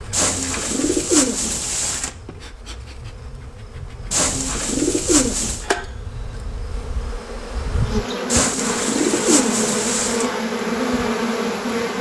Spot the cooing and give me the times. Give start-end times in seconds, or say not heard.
0.1-2.1, 4.1-5.7, 8.3-10.3.